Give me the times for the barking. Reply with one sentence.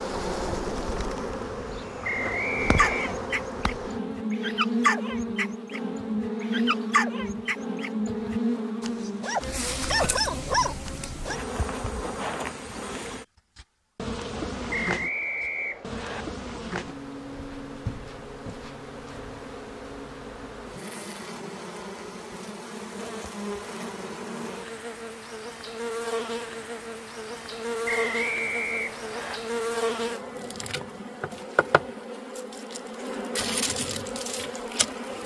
You can hear the barking from 2.8 to 11.4 s.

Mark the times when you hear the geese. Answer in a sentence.
The geese can't be heard in this clip.